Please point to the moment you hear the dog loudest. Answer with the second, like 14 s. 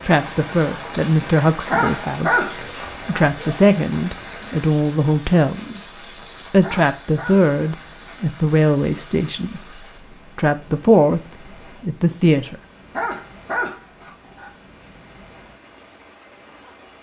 2 s.